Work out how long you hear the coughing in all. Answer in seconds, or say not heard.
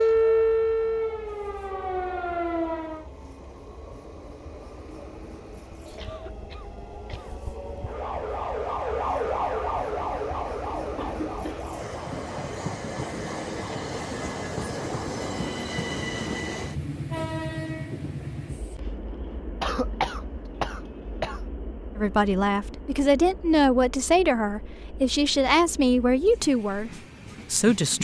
4 s.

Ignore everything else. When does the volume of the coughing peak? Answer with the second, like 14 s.
20 s.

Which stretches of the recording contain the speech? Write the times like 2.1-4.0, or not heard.
21.9-27.9.